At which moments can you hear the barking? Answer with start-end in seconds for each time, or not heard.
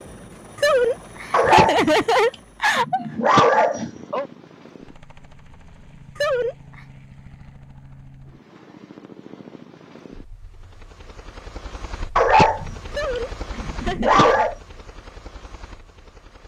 1.3-1.9, 2.8-4.2, 12.2-12.8, 13.6-14.6.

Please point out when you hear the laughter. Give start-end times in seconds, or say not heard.
0.6-3.2, 6.2-6.8, 12.9-14.3.